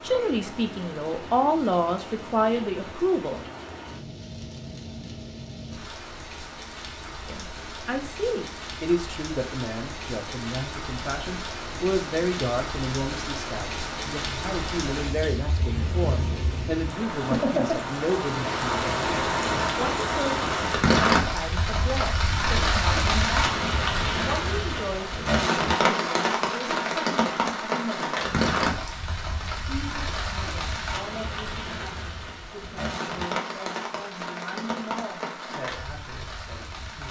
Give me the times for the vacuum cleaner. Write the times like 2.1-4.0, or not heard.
not heard.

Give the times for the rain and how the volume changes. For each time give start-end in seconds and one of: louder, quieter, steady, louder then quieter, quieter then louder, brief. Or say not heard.
0.0-37.0 louder then quieter.